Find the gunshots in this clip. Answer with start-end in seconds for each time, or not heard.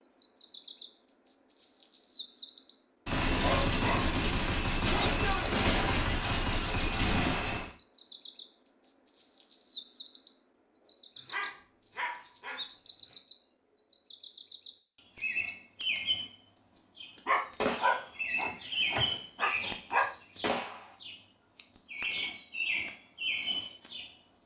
3.0-7.7, 17.6-20.9.